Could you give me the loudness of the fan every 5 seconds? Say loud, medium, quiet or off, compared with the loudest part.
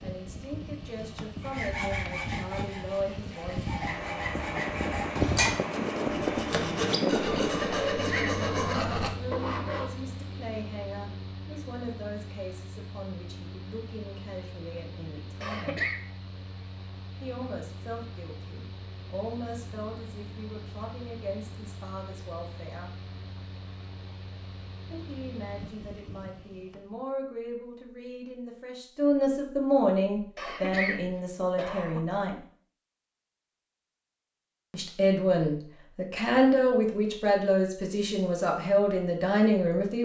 medium, loud, quiet, quiet, quiet, quiet, off, off.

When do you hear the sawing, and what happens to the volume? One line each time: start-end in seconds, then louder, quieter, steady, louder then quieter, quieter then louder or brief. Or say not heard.
1.4-9.9 louder.